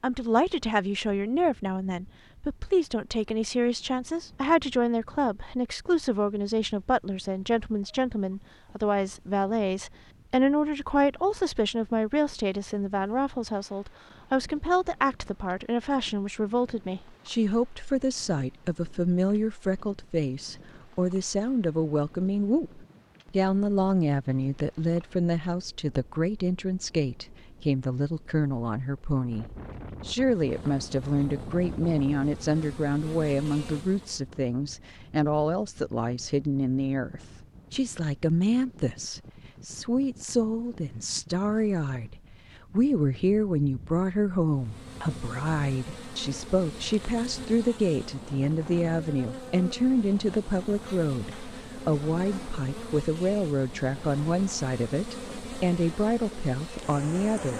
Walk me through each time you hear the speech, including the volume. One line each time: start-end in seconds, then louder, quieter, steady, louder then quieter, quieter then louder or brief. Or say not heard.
0.0-29.4 steady
30.1-57.5 steady.